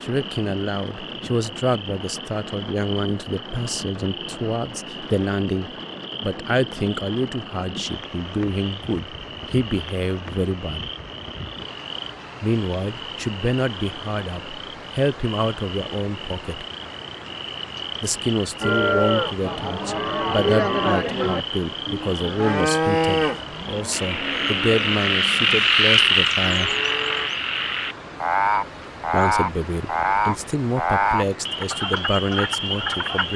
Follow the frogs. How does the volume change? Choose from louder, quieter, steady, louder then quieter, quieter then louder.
louder.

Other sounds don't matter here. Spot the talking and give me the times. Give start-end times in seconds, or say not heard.
0.0-10.9, 12.4-16.6, 18.0-26.7, 29.1-33.3.